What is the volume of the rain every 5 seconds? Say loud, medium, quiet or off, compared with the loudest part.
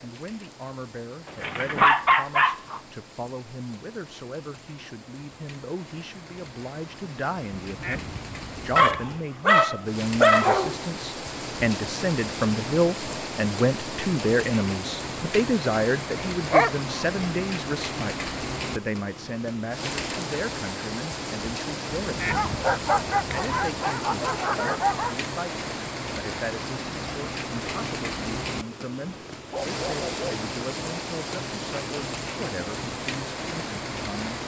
quiet, medium, loud, loud, loud, loud, loud.